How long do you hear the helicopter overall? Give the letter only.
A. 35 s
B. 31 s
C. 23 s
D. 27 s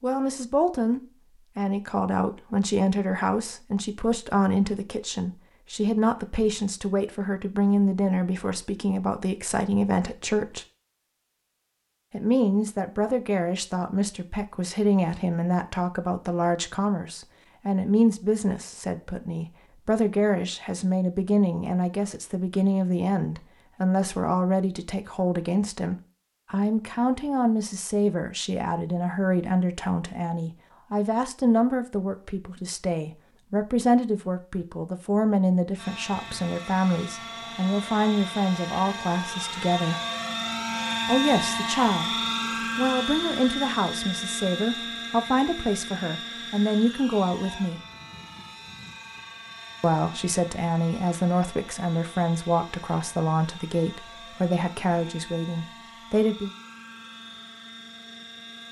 C.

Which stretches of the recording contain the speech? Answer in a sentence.
You can hear the speech from 0.0 to 10.7 s, from 12.1 to 40.0 s, from 41.0 to 42.1 s, from 42.8 to 47.8 s and from 49.8 to 56.5 s.